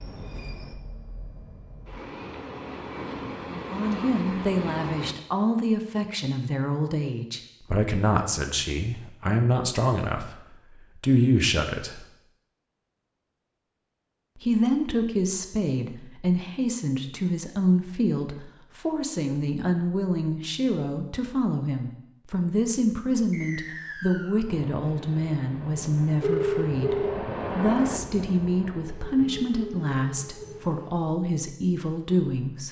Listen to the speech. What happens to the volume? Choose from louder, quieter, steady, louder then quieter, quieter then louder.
steady.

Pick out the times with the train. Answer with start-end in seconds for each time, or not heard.
0.0-5.2, 24.4-30.9.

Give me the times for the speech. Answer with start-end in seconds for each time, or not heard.
3.5-12.1, 14.3-32.6.